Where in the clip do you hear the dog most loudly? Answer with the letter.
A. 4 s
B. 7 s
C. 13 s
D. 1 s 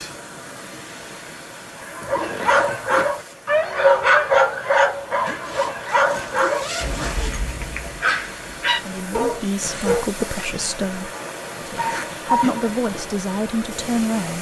A.